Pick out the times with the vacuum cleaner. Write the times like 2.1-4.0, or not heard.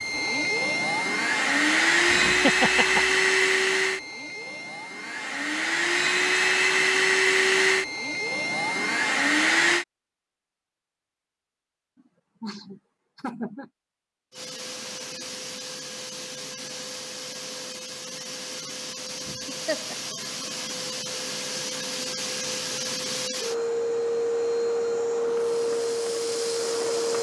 0.0-9.8, 14.3-27.1.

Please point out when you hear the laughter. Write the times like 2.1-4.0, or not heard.
2.0-3.2, 12.4-13.7, 19.2-19.9.